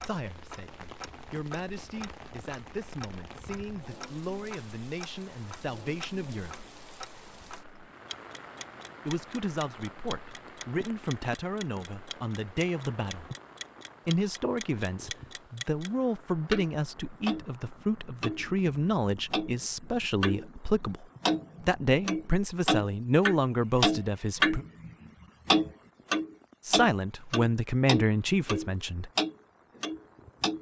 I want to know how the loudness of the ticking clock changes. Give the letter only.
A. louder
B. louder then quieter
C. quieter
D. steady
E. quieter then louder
A.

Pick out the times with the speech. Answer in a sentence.
You can hear the speech from 0.0 to 6.7 s, from 9.1 to 13.3 s, from 14.1 to 24.6 s and from 26.6 to 29.1 s.